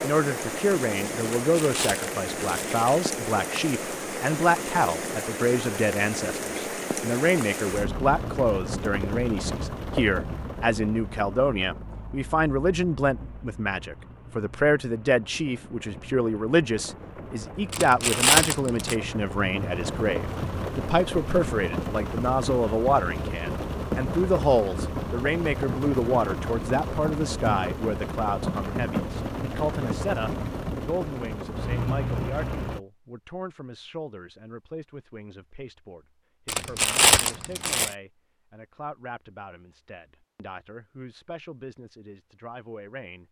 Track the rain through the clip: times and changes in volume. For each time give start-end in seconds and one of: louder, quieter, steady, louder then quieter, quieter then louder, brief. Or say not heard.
0.0-32.8 quieter then louder.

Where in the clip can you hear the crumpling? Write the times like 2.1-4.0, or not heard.
1.2-3.0, 17.7-18.9, 36.5-38.0.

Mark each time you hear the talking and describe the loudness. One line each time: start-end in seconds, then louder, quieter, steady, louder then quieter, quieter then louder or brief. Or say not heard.
0.0-43.2 quieter.